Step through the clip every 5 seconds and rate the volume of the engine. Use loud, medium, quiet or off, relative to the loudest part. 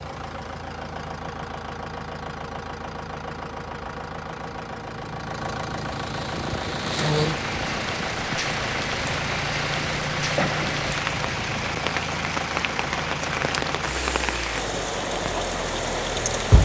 medium, loud, loud, loud.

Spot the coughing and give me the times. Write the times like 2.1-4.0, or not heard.
10.3-10.8.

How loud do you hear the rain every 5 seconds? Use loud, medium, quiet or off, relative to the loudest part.
off, loud, loud, loud.